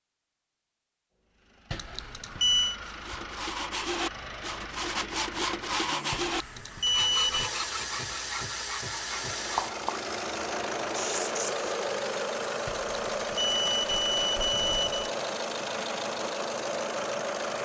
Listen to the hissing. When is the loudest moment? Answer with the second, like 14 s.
9 s.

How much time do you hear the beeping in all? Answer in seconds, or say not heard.
5 s.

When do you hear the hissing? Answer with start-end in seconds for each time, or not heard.
4.0-11.7.